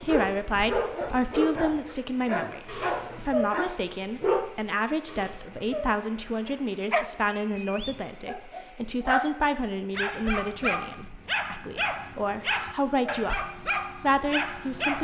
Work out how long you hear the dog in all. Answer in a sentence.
You can hear the dog for 13 seconds altogether.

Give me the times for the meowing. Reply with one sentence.
You can hear the meowing from 2.6 to 3.5 s, from 5.0 to 5.8 s and from 12.4 to 13.2 s.